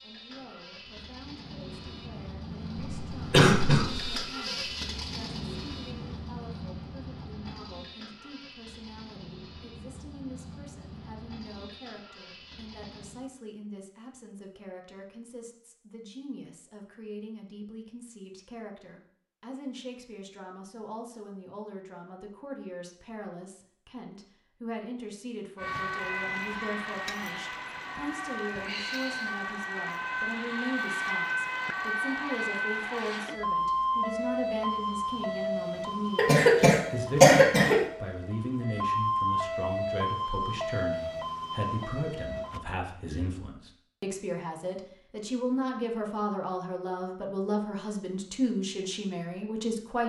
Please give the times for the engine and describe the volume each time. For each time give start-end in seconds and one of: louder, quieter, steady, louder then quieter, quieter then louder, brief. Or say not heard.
0.0-13.2 louder then quieter.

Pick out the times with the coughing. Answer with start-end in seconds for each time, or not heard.
2.8-4.2, 36.1-37.8.